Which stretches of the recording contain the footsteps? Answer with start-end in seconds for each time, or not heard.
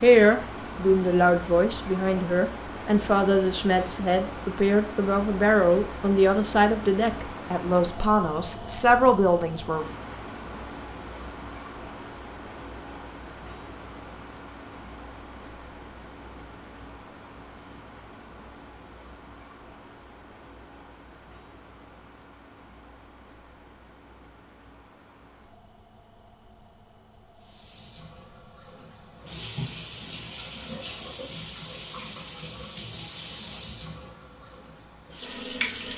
not heard.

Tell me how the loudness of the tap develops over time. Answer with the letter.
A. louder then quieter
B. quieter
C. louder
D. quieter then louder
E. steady
A.